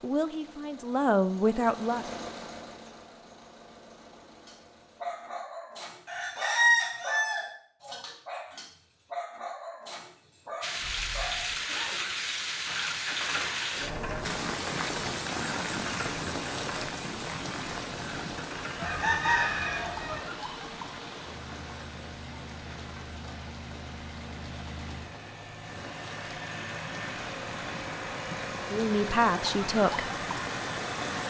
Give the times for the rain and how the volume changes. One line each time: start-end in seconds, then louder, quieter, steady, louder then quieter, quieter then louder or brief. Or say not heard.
10.6-31.2 quieter then louder.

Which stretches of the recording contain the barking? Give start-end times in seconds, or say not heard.
4.4-12.2.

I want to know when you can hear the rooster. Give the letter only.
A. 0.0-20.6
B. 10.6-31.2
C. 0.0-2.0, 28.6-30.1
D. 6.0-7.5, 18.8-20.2
D.